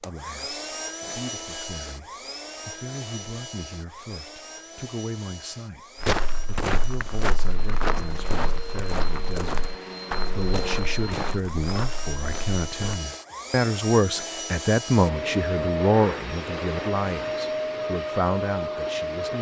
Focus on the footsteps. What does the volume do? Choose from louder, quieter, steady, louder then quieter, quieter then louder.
quieter.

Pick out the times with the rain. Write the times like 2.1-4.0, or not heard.
not heard.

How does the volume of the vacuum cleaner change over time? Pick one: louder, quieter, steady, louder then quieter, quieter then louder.
quieter then louder.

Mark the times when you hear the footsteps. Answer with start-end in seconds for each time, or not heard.
6.0-13.0.